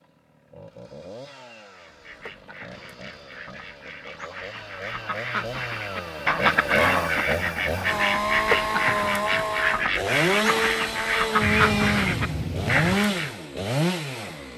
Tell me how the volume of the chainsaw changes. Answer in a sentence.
The volume of the chainsaw goes up.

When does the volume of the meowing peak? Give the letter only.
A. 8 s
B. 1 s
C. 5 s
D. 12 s
D.